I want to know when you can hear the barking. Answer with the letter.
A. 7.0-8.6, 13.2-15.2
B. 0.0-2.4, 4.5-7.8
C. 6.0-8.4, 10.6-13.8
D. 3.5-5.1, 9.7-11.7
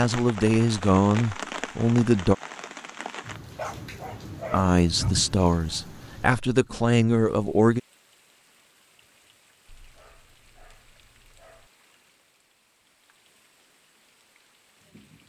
D.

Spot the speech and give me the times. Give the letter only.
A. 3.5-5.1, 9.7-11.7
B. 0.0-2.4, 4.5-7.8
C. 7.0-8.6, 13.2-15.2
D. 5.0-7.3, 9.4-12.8
B.